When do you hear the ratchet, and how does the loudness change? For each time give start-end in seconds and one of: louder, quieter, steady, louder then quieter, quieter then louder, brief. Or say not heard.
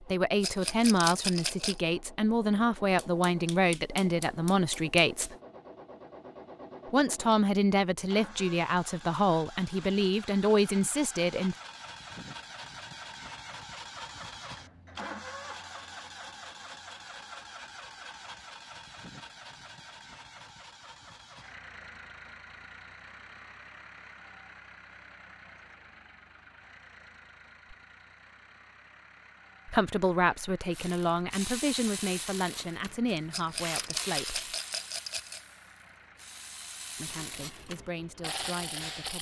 30.7-39.1 quieter then louder.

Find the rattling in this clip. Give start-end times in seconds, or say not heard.
0.4-1.8, 33.3-35.4.